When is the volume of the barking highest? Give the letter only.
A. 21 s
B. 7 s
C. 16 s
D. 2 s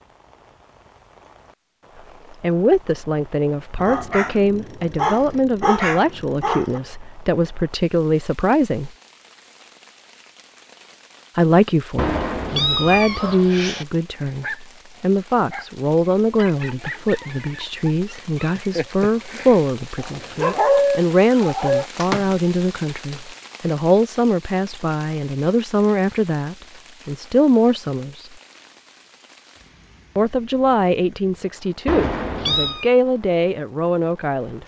A.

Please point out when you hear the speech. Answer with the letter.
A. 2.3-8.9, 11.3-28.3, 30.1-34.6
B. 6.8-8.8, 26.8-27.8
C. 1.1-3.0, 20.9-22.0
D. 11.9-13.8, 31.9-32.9
A.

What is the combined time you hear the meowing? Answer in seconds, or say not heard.
3 s.